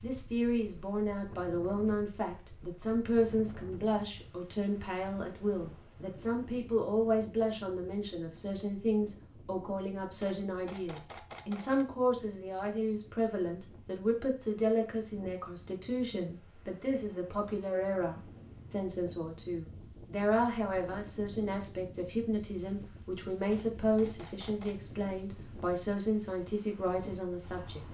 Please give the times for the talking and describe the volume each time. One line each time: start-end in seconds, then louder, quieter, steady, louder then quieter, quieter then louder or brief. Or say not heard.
0.0-27.8 steady.